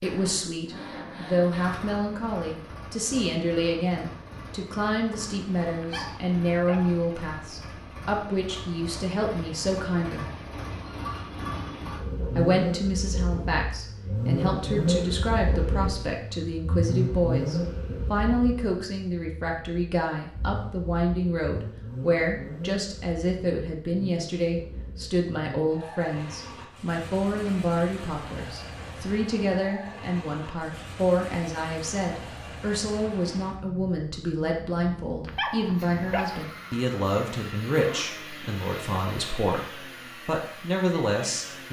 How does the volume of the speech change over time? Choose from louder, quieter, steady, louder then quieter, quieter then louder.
steady.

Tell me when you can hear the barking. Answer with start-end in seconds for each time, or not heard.
5.8-7.0, 35.2-36.5.